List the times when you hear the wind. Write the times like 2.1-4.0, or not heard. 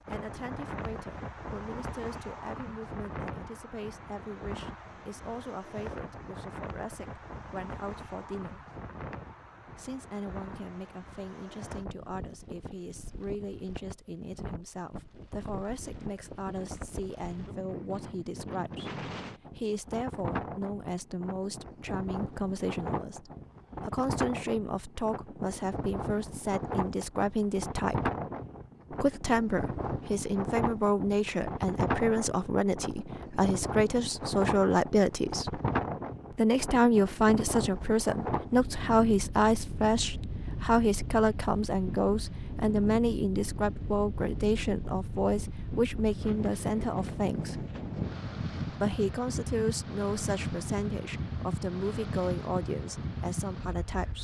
0.0-54.1.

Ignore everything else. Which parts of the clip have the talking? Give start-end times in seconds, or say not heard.
0.1-8.6, 9.7-28.1, 28.9-35.6, 36.4-47.6, 48.6-54.1.